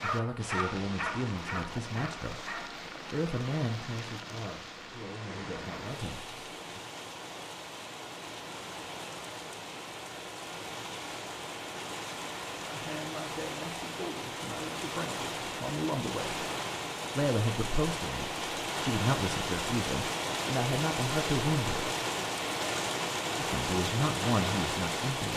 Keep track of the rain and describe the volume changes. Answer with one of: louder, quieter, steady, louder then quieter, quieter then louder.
louder.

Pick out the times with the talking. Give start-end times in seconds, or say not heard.
0.0-6.8, 12.6-16.4, 17.1-21.9, 23.4-25.3.